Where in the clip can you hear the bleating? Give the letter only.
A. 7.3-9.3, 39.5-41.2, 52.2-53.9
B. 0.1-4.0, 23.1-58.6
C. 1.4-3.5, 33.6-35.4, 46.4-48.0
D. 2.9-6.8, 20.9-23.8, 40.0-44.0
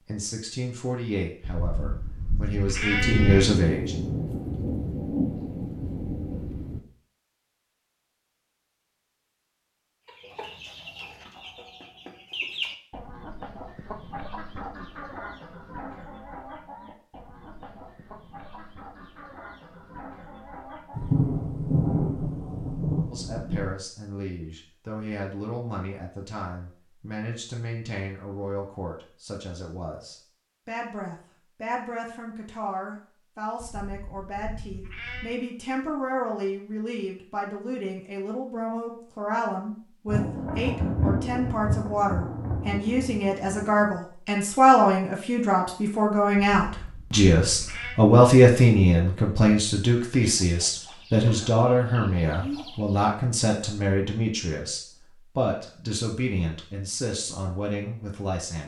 C.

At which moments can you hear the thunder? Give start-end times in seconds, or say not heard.
2.9-6.8, 20.9-23.8, 40.0-44.0.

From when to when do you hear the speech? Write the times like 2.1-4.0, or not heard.
0.1-4.0, 23.1-58.6.